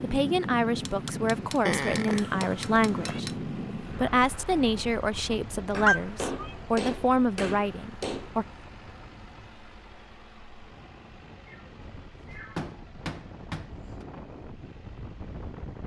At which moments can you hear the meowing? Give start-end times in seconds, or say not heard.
1.6-3.2, 5.8-6.5, 11.4-12.7.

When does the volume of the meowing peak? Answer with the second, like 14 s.
6 s.